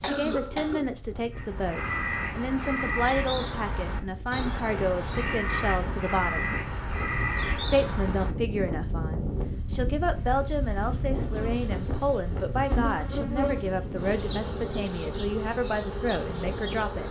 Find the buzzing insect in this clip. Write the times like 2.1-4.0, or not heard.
11.2-17.0.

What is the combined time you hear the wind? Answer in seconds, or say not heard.
17 s.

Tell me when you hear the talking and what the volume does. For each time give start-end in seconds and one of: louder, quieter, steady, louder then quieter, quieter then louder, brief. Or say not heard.
0.0-6.6 steady
7.7-17.0 steady.